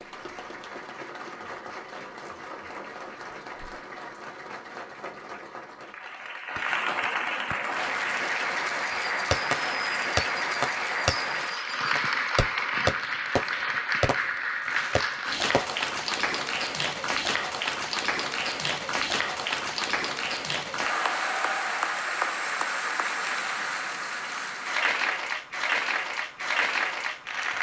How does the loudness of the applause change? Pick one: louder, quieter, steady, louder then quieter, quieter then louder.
louder.